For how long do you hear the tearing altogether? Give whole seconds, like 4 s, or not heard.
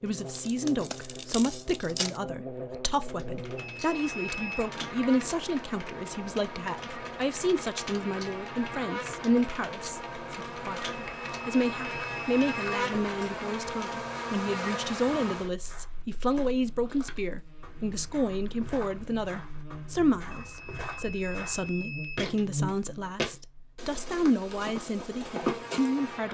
2 s.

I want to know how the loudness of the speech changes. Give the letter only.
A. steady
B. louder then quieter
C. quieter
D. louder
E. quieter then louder
A.